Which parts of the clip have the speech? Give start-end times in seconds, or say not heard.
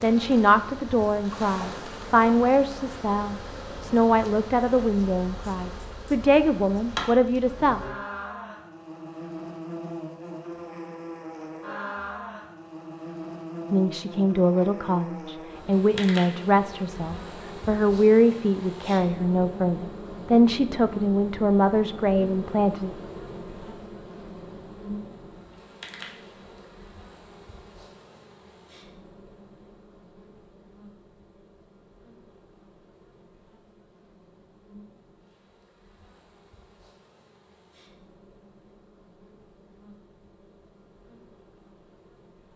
0.0-7.8, 13.7-22.9.